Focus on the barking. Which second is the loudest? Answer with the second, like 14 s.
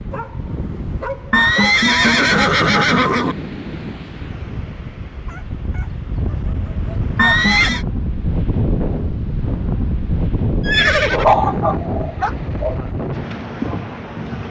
11 s.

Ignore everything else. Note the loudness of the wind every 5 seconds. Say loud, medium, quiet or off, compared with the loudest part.
medium, loud, loud.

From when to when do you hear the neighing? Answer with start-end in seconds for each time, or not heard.
1.3-3.4, 7.2-7.8, 10.7-11.3.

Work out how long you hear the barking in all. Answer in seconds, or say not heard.
6 s.